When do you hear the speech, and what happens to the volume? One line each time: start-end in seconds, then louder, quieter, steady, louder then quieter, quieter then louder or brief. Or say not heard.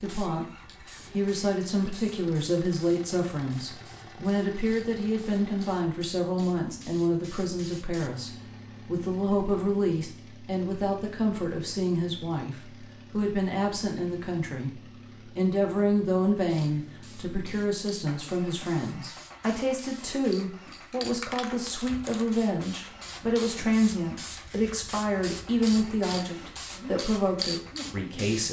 0.0-0.5 brief
1.1-28.4 steady.